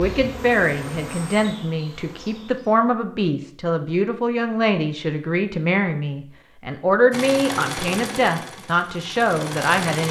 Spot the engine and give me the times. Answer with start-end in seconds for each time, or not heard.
7.1-10.0.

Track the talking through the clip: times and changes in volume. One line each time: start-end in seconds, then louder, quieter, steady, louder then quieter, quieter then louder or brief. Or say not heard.
0.0-10.0 steady.